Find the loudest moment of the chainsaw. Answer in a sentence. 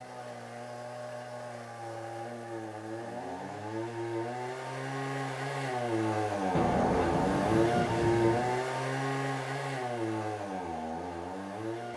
The volume of the chainsaw peaks at 8 seconds.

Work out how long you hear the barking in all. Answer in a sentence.
You can't hear the barking here.